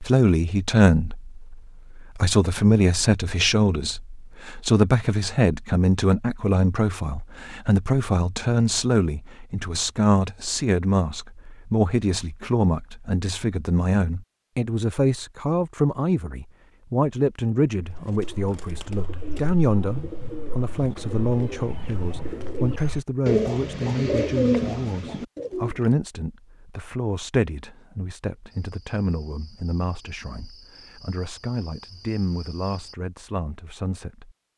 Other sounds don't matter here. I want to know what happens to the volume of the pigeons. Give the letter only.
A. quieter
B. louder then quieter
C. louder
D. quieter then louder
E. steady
C.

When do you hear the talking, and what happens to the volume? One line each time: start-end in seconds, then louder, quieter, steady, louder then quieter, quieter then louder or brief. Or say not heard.
0.0-34.4 quieter.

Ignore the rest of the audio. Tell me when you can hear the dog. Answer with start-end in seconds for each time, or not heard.
not heard.